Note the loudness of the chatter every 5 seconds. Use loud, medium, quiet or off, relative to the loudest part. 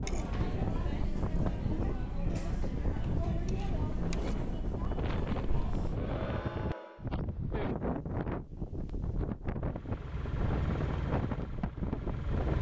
loud, loud, off.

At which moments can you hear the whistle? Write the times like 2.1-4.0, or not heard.
not heard.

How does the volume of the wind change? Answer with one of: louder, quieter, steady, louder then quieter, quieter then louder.
steady.